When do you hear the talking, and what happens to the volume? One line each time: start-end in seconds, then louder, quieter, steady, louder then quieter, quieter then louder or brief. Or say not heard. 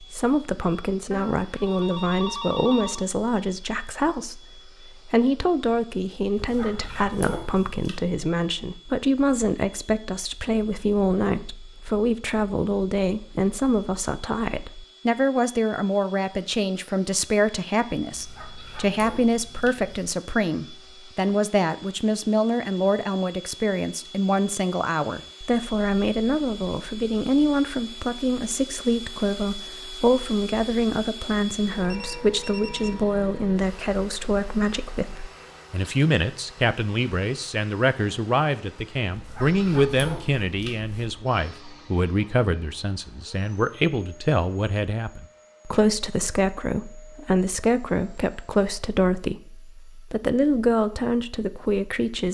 0.0-52.2 steady.